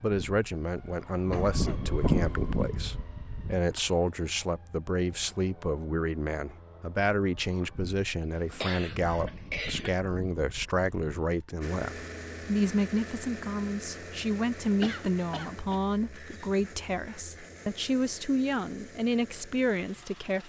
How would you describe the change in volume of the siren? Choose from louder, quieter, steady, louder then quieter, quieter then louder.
quieter then louder.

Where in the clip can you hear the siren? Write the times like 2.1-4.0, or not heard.
0.0-11.4.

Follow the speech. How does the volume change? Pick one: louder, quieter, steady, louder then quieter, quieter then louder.
steady.